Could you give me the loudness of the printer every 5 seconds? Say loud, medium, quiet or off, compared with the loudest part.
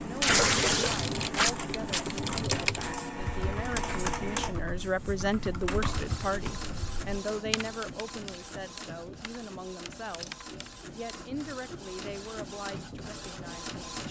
loud, medium, medium.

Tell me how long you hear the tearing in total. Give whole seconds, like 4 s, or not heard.
2 s.